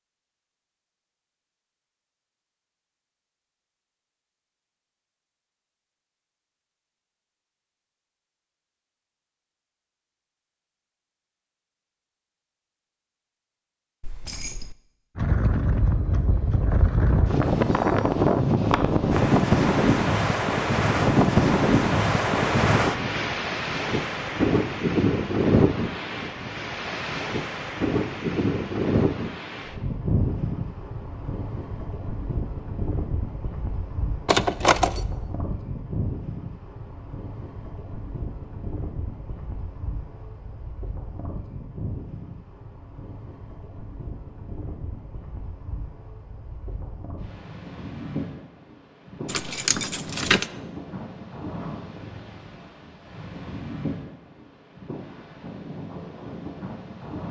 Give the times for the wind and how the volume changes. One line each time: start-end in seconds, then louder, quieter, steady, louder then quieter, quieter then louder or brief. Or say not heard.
15.2-57.2 quieter.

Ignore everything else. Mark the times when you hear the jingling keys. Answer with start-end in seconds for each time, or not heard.
14.0-14.8, 34.2-35.0, 49.2-50.5.